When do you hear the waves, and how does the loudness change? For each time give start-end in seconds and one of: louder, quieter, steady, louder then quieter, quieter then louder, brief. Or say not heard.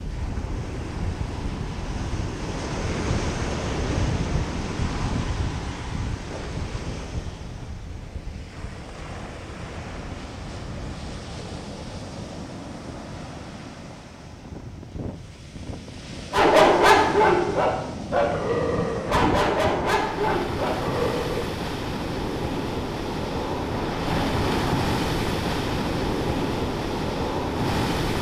0.0-28.1 quieter then louder.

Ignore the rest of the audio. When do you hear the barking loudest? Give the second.
17 s.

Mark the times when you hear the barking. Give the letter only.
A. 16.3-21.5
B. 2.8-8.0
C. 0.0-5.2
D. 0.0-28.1
A.